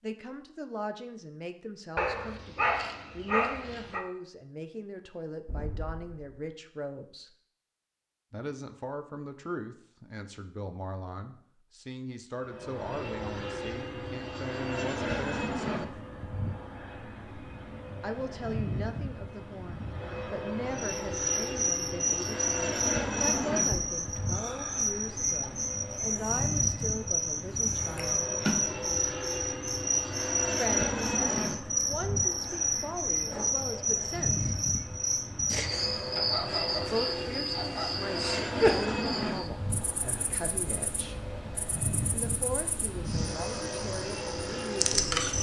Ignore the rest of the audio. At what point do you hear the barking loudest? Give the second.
3 s.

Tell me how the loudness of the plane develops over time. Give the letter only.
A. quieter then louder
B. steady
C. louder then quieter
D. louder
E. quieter
B.